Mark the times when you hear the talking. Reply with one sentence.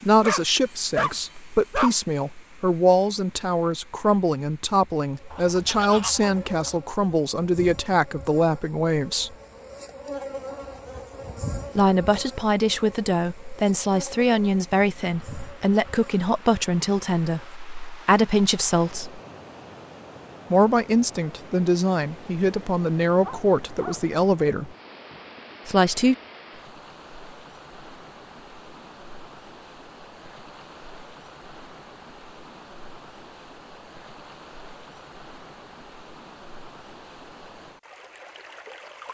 The talking can be heard from 0.0 to 9.3 s, from 11.8 to 19.2 s, from 20.5 to 24.7 s and from 25.6 to 26.1 s.